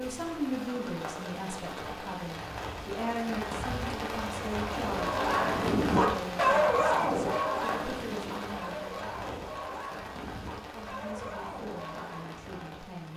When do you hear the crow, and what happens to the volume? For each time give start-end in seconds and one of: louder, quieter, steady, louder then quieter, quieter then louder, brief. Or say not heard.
not heard.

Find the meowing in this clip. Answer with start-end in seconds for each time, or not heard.
not heard.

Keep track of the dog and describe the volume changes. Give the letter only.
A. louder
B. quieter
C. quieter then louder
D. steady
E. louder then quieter
B.